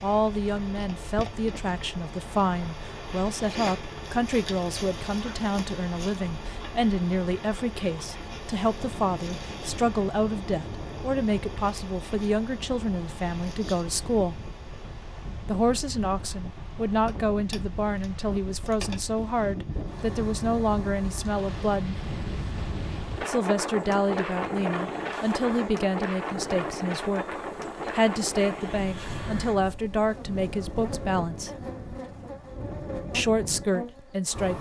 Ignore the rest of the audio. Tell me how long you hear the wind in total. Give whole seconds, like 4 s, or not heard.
26 s.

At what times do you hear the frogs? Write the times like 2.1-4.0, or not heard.
not heard.